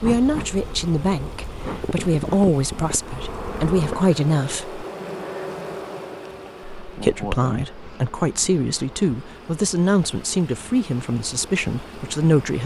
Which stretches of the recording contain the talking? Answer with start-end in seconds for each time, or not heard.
0.0-4.8, 6.8-12.6.